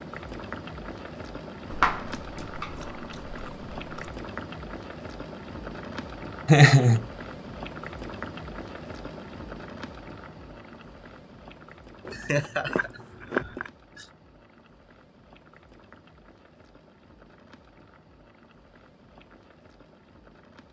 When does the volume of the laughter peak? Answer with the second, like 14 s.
7 s.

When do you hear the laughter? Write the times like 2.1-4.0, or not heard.
6.5-7.0, 12.1-14.1.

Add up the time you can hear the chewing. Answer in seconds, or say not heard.
4 s.